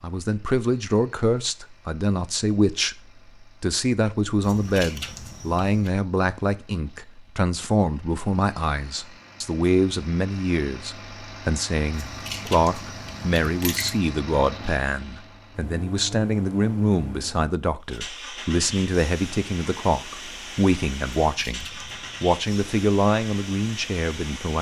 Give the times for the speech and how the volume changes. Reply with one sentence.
You can hear the speech from 0.0 to 24.5 s, at a steady volume.